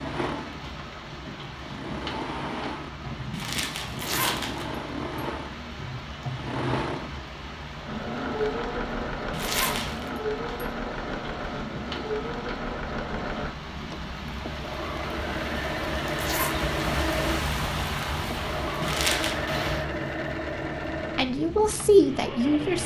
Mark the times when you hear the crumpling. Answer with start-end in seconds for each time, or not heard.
3.3-4.7, 9.3-10.1, 18.8-19.4.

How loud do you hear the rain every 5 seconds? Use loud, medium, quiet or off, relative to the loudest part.
medium, medium, medium, loud, medium.